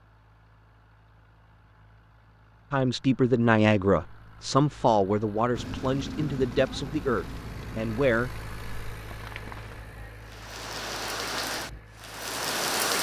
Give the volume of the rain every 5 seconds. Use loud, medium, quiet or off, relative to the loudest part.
off, medium, loud.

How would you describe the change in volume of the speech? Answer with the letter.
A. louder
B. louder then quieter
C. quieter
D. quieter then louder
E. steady
C.